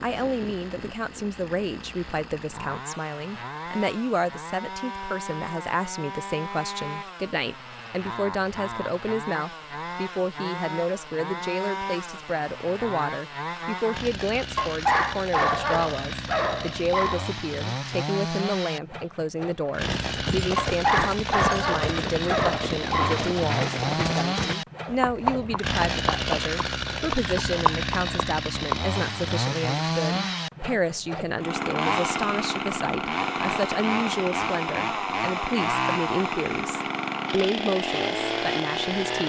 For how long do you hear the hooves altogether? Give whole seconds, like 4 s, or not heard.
9 s.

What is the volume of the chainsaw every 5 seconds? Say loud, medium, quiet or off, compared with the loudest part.
medium, medium, medium, medium, loud, loud, loud, loud.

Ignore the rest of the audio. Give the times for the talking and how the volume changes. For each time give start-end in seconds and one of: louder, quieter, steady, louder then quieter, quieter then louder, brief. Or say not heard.
0.0-39.2 steady.